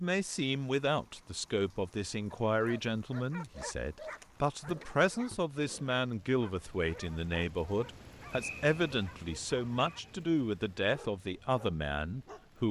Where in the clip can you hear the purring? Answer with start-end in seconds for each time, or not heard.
not heard.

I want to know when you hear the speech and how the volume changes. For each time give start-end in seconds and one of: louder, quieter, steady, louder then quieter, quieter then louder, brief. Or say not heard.
0.0-12.6 steady.